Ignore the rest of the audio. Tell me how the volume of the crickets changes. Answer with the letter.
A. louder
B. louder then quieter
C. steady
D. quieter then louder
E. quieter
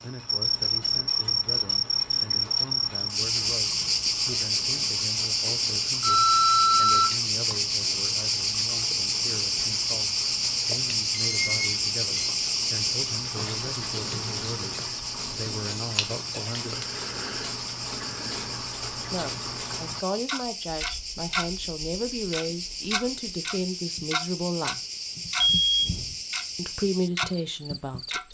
E.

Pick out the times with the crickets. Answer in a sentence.
You can hear the crickets from 0.0 to 28.2 s.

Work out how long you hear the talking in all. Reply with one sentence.
The talking can be heard for 24 seconds in total.